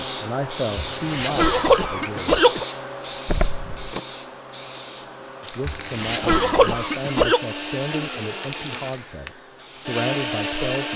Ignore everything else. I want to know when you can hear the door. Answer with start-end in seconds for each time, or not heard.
3.2-4.0.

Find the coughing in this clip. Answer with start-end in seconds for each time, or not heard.
0.8-2.6, 5.7-7.4.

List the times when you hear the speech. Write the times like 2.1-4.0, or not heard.
0.0-2.4, 5.4-10.9.